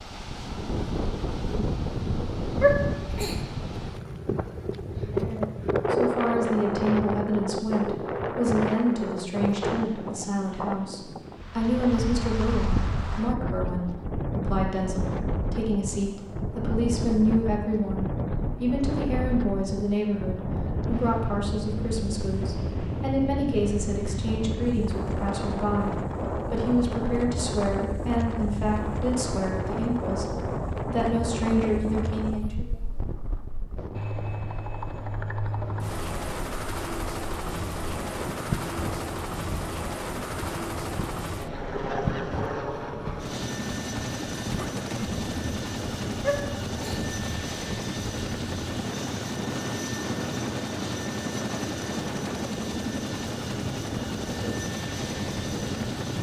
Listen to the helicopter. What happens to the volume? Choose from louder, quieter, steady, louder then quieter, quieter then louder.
steady.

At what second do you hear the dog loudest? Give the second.
3 s.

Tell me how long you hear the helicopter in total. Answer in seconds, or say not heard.
22 s.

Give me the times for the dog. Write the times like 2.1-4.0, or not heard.
2.6-3.4, 46.2-47.0.